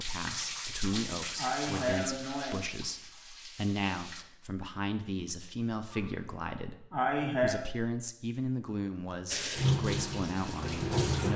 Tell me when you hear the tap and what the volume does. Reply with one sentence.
You can hear the tap from 0.0 to 4.2 s, getting quieter; and briefly from 9.3 to 11.3 s.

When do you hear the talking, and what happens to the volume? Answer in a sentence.
You can hear the talking from 0.0 to 11.3 s, at a steady volume.